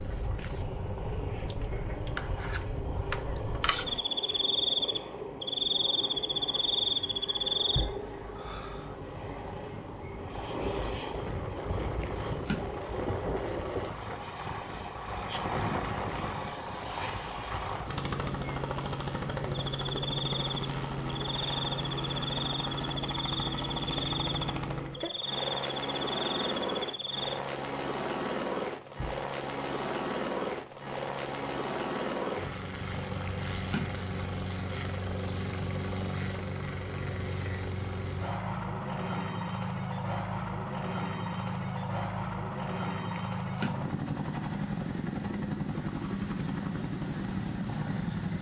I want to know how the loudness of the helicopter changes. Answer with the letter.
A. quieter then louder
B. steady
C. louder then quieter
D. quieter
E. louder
E.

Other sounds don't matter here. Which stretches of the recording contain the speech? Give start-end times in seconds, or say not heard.
not heard.